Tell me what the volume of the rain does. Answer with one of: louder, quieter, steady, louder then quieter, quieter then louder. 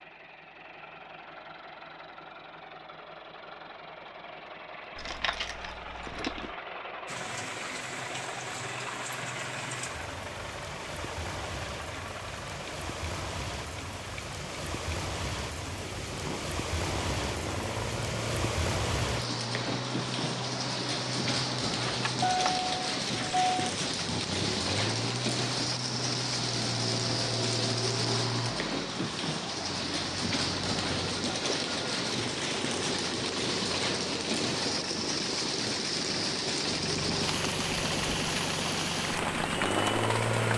louder.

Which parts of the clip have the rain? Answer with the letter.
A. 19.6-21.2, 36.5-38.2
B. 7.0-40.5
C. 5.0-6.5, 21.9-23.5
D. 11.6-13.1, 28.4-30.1
B.